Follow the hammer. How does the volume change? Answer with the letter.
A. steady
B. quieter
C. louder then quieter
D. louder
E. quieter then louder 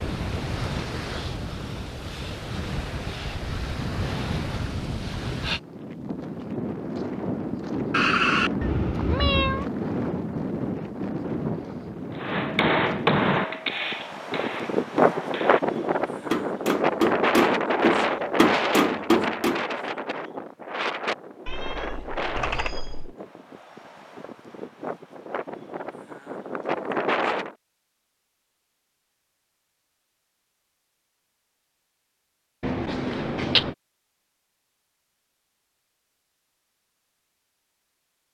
E.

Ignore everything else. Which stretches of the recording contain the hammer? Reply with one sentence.
The hammer can be heard from 12.2 to 19.6 s.